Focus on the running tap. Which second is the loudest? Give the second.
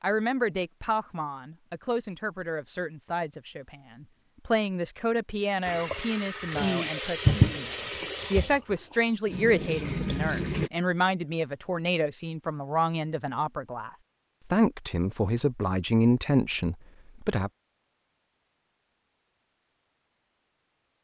7 s.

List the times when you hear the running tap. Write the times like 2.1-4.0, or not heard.
5.7-10.7.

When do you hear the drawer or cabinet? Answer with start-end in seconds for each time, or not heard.
not heard.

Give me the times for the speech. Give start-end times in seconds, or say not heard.
0.0-13.9, 14.5-17.5.